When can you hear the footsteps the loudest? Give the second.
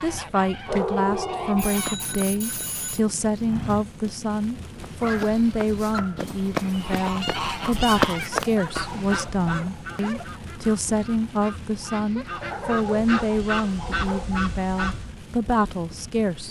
8 s.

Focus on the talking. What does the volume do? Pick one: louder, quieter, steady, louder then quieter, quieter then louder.
steady.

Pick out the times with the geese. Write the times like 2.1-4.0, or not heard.
0.0-2.1, 6.8-15.2.